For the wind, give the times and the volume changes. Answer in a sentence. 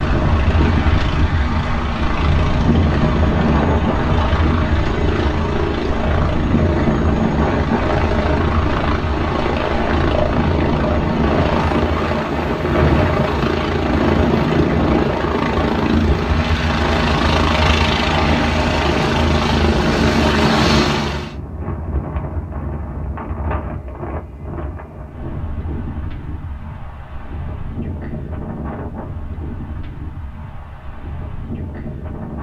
You can hear the wind from 0.0 to 32.3 s, getting quieter.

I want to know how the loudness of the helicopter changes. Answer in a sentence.
The volume of the helicopter goes up.